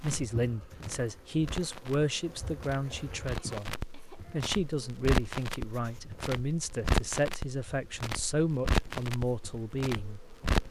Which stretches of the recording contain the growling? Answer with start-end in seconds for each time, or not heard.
not heard.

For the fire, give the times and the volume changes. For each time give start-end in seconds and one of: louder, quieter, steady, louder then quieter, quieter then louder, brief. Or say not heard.
0.0-10.6 louder.